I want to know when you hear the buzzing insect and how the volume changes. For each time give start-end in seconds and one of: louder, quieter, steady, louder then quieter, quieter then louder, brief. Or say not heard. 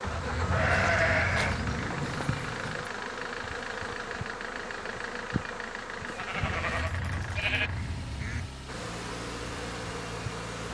0.0-6.8 steady
8.7-10.6 brief.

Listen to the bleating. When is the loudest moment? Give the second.
1 s.